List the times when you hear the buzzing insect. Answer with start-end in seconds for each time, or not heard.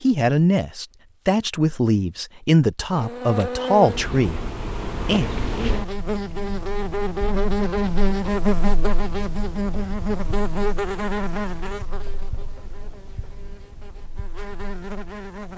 2.9-15.5.